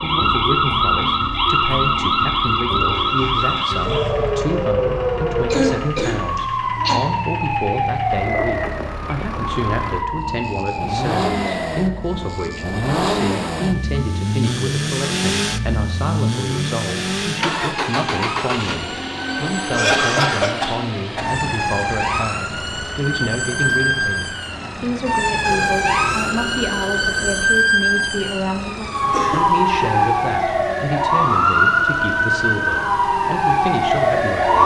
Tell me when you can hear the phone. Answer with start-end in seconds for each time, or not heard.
8.2-9.4, 25.4-27.4.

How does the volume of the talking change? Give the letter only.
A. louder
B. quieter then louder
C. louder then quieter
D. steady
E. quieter
D.